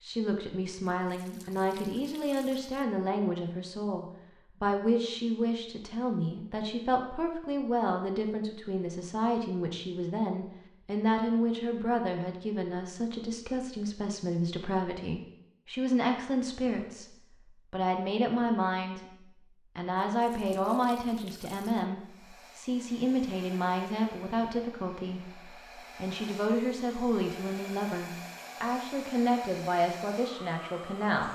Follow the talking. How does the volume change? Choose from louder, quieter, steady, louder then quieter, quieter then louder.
steady.